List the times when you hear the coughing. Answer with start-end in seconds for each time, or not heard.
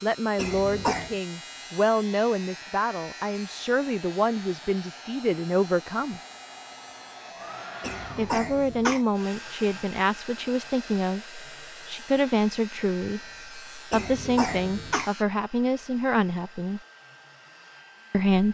0.3-1.1, 7.8-9.0, 13.9-15.1.